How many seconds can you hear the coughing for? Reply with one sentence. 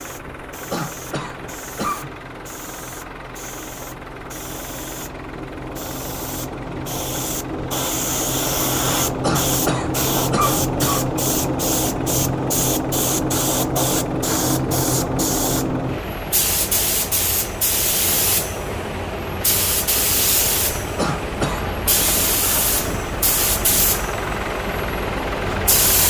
You can hear the coughing for 4 seconds altogether.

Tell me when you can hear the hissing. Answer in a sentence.
You can hear the hissing from 0.0 to 26.0 s.